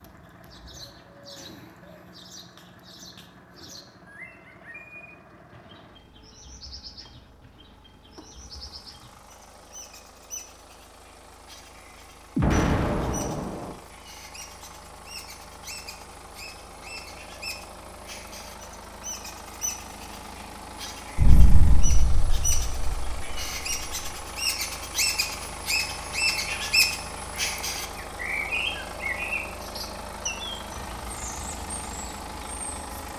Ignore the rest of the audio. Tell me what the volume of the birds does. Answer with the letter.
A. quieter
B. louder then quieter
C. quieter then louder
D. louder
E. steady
D.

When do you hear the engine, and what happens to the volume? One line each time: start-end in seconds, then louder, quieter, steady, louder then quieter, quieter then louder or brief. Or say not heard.
0.0-33.1 louder.